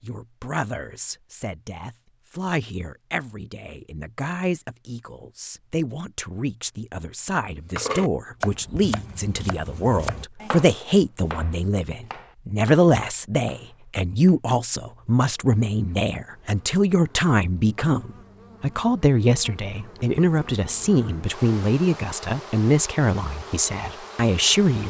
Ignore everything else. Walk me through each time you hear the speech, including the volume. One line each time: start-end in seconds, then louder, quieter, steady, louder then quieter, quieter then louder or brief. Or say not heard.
0.0-24.8 louder.